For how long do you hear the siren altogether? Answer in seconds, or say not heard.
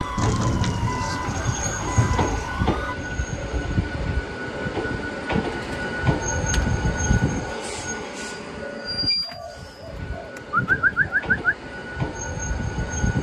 3 s.